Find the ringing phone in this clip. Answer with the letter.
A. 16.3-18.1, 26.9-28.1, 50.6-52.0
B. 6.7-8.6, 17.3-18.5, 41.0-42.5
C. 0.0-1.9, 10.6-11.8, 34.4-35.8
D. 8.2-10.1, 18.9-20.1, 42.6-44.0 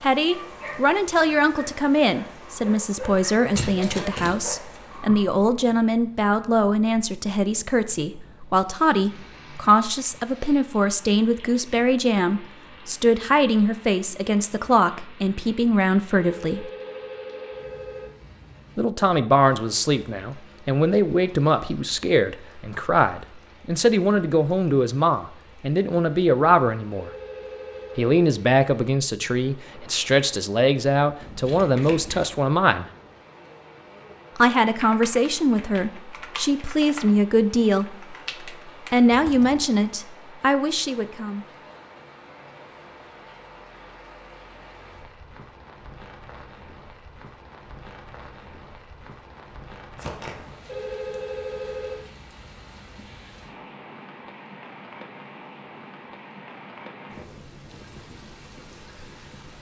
A.